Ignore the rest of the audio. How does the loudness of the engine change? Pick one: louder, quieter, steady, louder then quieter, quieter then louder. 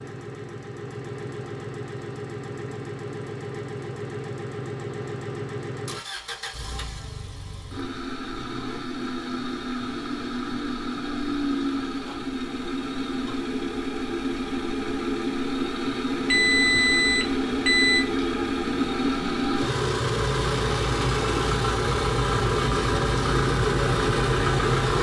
louder.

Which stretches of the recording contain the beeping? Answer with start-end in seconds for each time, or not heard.
16.2-18.1.